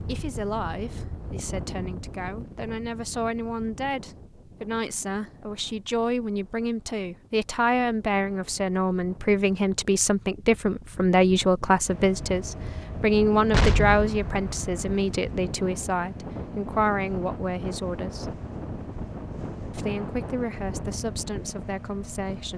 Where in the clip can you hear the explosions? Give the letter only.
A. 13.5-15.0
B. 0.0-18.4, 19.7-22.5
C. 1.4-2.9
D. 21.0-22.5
A.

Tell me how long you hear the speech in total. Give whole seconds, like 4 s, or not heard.
21 s.